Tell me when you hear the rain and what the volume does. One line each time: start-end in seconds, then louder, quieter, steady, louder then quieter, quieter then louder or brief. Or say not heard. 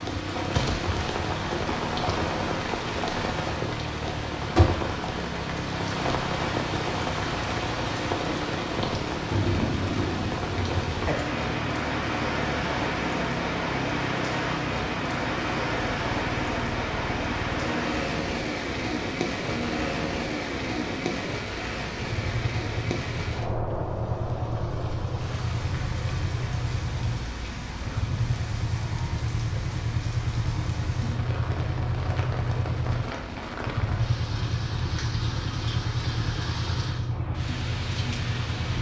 0.0-38.7 quieter.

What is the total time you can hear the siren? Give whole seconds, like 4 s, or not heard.
not heard.